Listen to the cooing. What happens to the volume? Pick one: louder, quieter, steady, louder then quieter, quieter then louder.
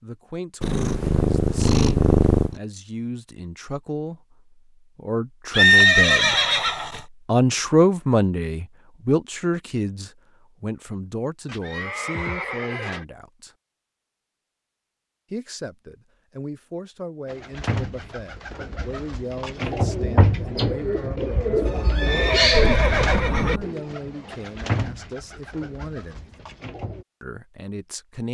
louder then quieter.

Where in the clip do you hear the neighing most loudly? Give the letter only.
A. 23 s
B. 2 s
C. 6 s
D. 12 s
C.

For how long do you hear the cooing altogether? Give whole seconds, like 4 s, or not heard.
10 s.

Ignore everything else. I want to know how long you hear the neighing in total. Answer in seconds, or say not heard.
5 s.